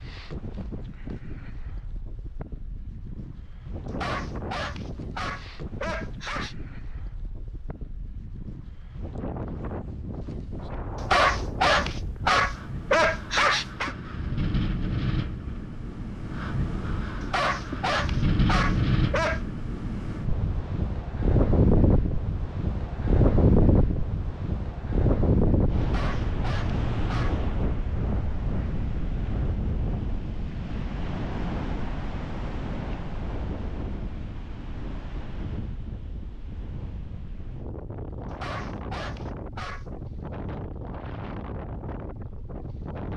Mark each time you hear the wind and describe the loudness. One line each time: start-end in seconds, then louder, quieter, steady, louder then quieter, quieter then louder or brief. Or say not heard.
0.0-43.1 louder then quieter.